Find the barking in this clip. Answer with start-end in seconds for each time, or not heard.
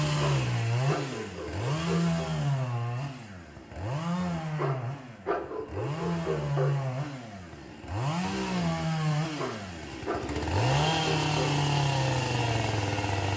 0.1-2.3, 4.5-6.8, 9.3-11.6.